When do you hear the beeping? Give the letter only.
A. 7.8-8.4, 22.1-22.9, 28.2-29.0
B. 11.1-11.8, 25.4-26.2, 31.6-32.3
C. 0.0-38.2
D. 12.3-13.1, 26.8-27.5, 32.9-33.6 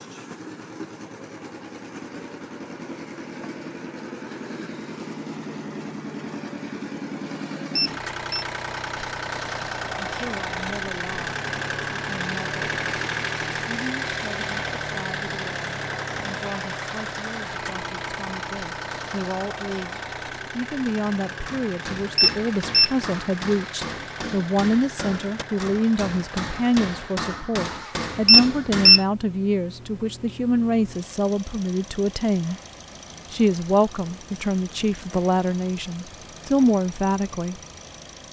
A.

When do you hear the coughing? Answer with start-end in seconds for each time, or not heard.
not heard.